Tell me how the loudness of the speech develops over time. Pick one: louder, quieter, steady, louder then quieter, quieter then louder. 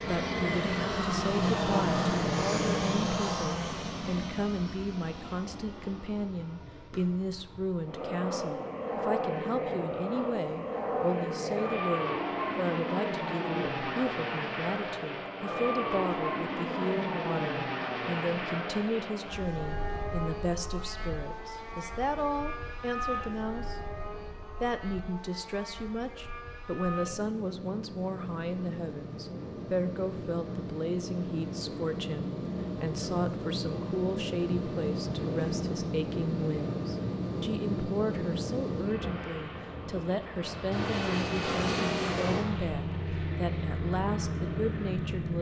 steady.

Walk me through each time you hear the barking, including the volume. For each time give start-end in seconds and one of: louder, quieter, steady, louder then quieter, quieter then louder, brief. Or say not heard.
not heard.